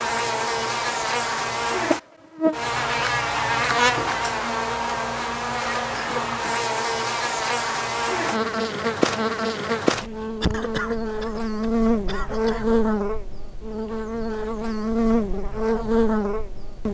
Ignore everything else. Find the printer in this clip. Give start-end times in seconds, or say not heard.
not heard.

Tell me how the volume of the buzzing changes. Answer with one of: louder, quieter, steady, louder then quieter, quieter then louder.
steady.